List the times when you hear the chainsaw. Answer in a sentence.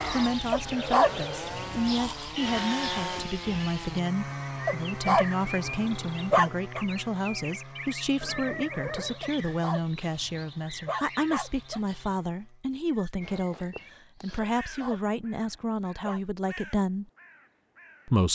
The chainsaw can be heard from 0.0 to 12.7 s.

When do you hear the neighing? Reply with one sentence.
The neighing can be heard from 2.4 to 3.9 s, from 8.2 to 9.2 s and from 14.2 to 15.2 s.